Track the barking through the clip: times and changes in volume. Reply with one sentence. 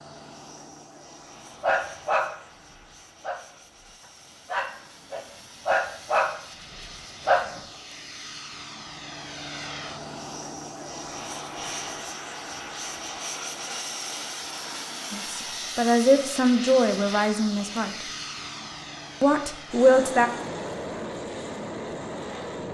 The barking can be heard from 1.6 to 7.6 s, getting quieter then louder.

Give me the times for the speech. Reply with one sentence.
You can hear the speech from 15.1 to 17.9 s and from 19.2 to 20.3 s.